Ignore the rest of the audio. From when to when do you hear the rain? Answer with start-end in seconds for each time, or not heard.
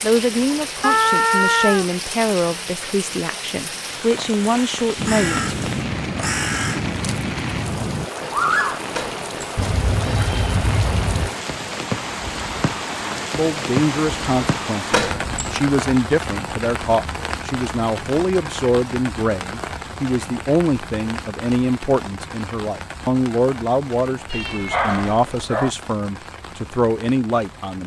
0.0-27.8.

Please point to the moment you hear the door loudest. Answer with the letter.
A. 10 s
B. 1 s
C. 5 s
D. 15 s
D.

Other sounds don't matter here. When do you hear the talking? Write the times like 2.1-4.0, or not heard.
0.0-5.5, 13.3-27.8.